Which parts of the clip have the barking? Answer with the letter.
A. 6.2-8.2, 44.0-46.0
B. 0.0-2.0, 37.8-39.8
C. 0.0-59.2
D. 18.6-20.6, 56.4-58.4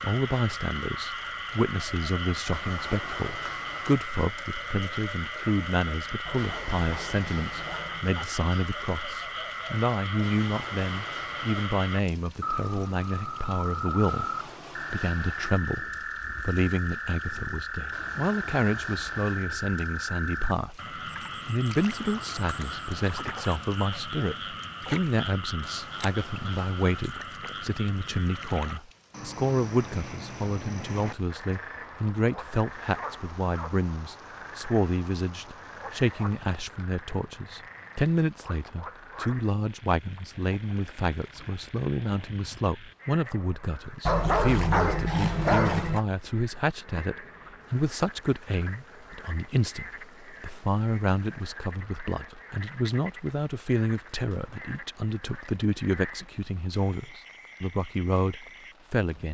A.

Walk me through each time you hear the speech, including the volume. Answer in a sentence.
The speech can be heard from 0.0 to 59.2 s, at a steady volume.